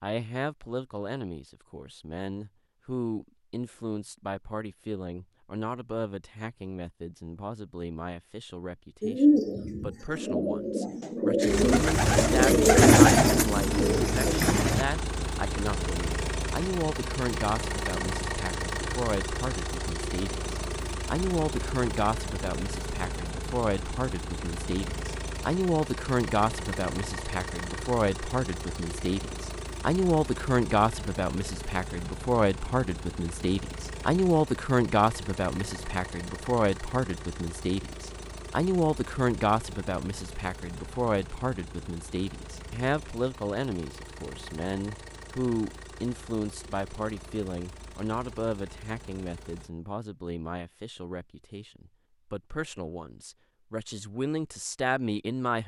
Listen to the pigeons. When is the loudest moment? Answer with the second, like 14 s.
13 s.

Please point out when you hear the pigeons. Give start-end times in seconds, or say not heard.
9.0-14.8.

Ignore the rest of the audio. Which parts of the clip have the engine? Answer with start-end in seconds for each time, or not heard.
11.4-49.7.